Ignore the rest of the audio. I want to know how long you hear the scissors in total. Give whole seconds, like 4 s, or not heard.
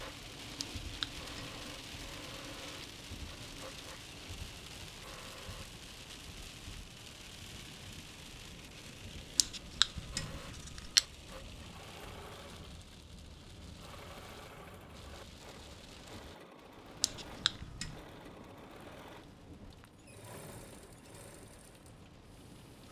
4 s.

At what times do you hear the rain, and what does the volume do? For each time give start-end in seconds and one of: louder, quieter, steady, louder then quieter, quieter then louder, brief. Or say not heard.
0.0-22.8 quieter.